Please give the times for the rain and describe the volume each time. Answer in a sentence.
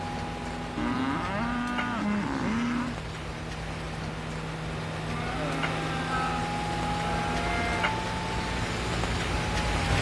You can hear the rain from 0.0 to 9.9 s, getting louder.